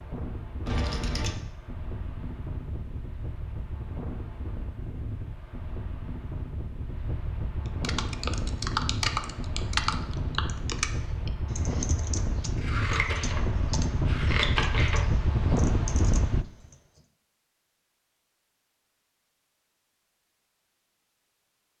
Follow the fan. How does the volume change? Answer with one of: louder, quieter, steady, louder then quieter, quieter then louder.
louder.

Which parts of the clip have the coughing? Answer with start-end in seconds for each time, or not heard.
not heard.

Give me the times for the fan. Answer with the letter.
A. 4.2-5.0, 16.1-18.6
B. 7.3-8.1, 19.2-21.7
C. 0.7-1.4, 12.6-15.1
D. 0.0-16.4
D.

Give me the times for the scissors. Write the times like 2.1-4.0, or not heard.
0.7-1.4, 12.6-15.1.